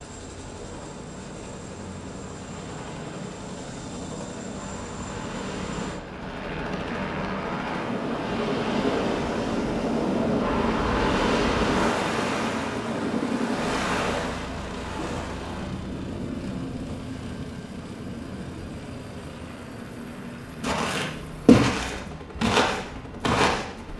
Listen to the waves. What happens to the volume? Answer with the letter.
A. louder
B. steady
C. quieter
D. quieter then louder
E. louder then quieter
E.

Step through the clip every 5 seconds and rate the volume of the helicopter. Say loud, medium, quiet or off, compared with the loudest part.
medium, loud, loud, medium, medium.